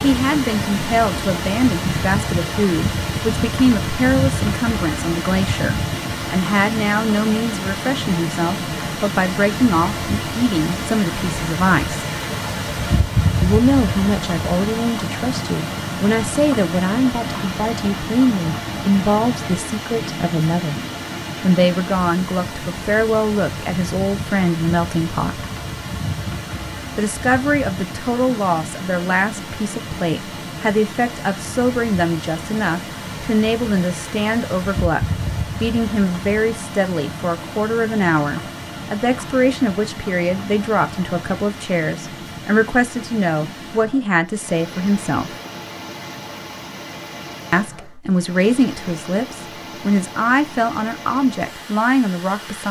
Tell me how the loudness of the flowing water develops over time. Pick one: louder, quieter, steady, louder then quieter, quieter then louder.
quieter.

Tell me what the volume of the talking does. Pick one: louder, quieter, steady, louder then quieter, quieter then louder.
steady.